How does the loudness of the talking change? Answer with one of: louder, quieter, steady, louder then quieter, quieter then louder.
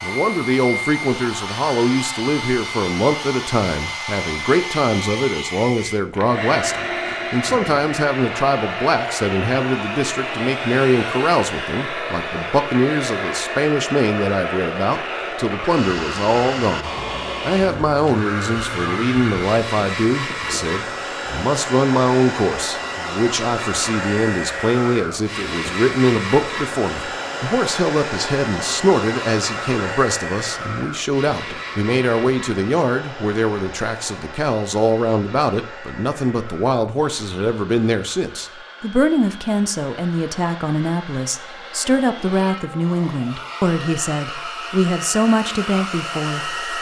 steady.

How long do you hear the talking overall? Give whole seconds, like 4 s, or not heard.
47 s.